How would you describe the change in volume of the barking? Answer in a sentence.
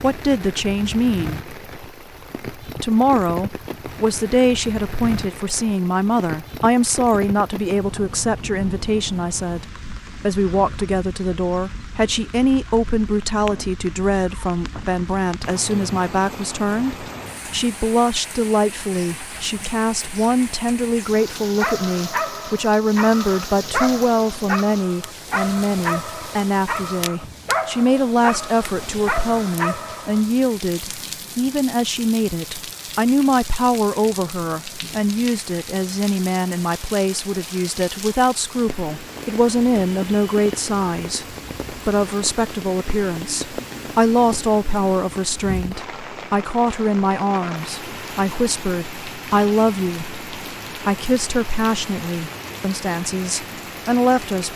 The volume of the barking stays about the same.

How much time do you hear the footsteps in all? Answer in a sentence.
You can't hear the footsteps here.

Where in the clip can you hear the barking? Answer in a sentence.
You can hear the barking from 21.6 to 30.3 s.